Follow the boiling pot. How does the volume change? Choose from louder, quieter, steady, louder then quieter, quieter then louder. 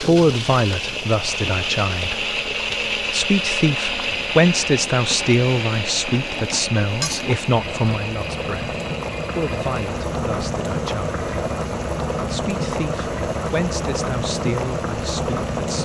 louder.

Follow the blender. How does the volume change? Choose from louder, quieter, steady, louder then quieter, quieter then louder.
quieter.